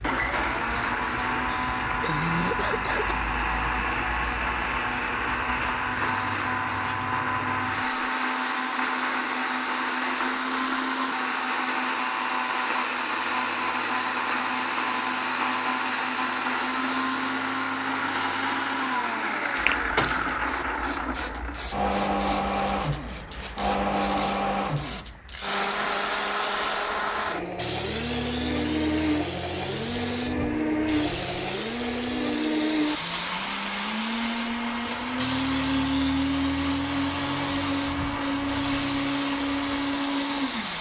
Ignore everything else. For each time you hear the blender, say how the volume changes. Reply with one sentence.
The blender can be heard from 0.0 to 40.7 s, at a steady volume.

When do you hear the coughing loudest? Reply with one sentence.
The loudest moment of the coughing is at 2 seconds.